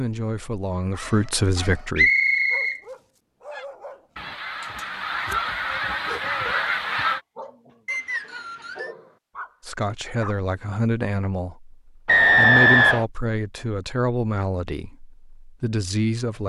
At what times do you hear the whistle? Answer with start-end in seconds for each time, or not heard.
1.9-2.8, 7.8-8.9, 12.1-13.1.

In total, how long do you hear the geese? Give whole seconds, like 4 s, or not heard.
4 s.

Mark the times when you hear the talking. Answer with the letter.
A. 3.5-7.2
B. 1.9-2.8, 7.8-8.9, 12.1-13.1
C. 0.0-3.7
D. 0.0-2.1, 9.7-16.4
D.